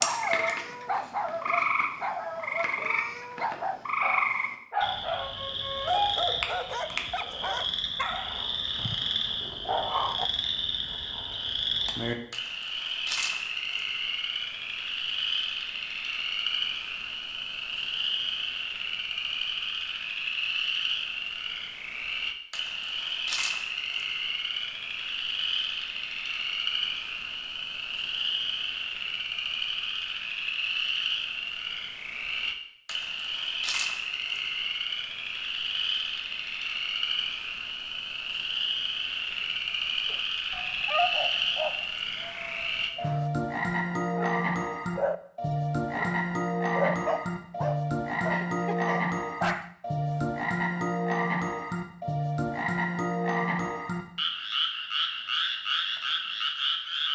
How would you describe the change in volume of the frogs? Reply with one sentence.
The volume of the frogs stays about the same.